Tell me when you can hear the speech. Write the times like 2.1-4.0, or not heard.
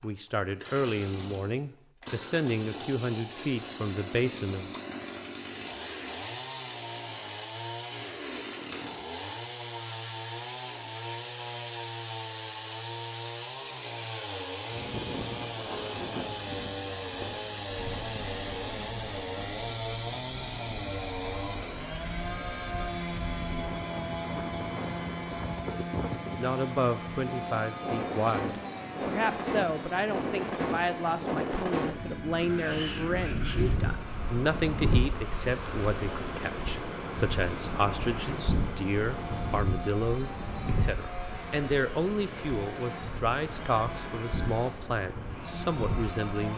0.0-4.8, 26.4-46.5.